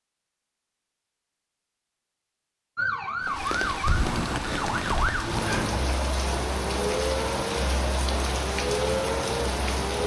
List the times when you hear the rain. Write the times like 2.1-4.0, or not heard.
3.2-10.0.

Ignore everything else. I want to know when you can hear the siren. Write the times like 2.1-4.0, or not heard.
2.8-10.0.